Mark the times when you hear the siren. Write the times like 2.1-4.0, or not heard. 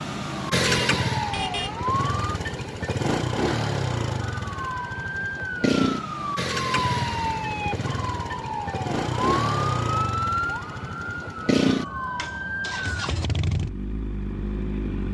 0.2-2.4, 4.2-13.1.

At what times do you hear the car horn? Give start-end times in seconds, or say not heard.
0.6-1.8.